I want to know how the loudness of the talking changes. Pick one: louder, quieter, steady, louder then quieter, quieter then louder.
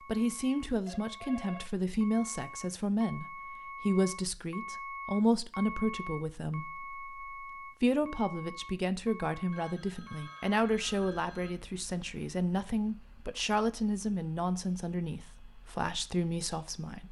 steady.